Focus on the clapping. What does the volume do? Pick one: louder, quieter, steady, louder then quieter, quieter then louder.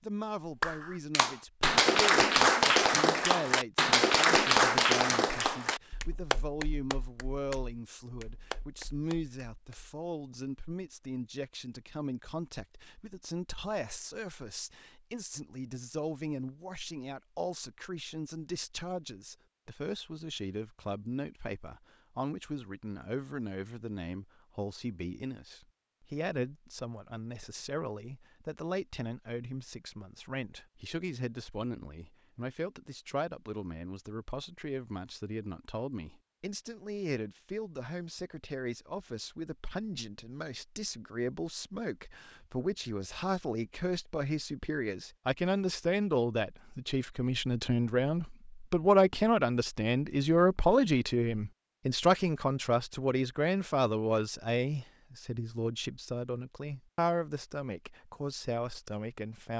quieter.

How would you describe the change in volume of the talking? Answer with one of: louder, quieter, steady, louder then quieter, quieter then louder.
louder.